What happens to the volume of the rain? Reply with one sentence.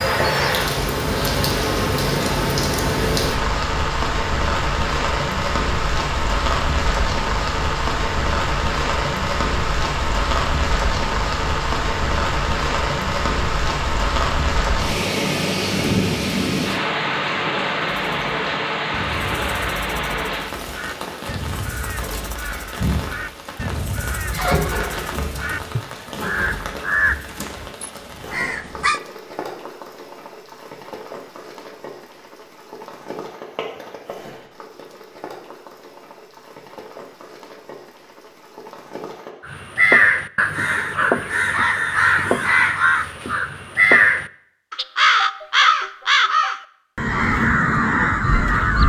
The volume of the rain goes down.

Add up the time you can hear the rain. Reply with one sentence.
You can hear the rain for 39 seconds altogether.